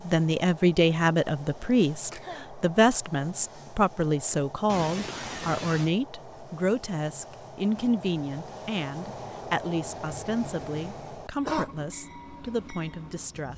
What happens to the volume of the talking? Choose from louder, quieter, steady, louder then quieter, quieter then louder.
quieter.